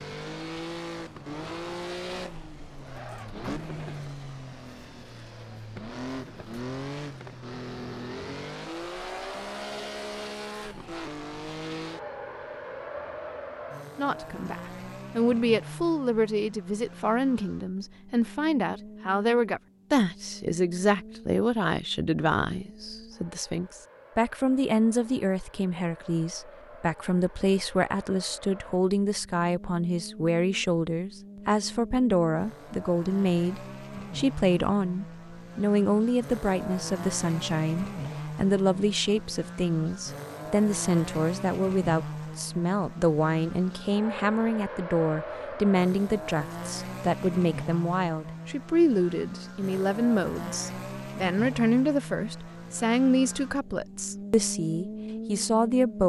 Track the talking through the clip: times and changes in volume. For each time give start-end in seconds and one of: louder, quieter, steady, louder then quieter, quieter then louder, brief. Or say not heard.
13.9-56.0 steady.